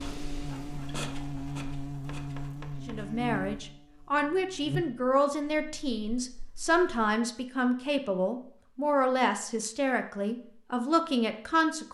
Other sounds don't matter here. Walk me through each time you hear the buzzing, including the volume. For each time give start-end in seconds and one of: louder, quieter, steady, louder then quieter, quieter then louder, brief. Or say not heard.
0.0-7.2 quieter.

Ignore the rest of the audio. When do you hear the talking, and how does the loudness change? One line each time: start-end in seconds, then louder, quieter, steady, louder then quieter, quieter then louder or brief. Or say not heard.
2.9-11.8 steady.